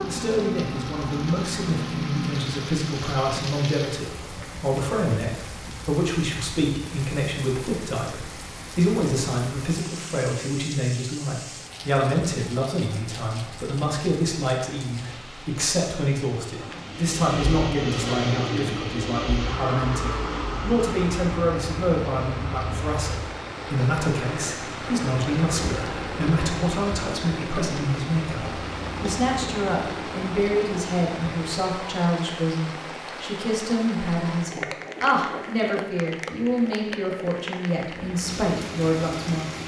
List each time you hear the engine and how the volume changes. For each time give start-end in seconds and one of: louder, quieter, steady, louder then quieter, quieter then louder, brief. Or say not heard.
0.0-2.8 brief
16.7-31.9 quieter
37.9-39.6 brief.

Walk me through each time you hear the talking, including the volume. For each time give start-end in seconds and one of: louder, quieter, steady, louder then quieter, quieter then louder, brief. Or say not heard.
0.1-39.5 steady.